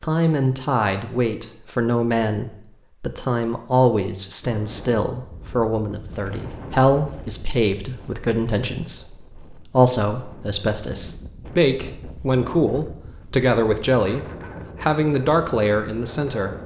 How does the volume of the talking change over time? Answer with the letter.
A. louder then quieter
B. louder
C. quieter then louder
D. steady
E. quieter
D.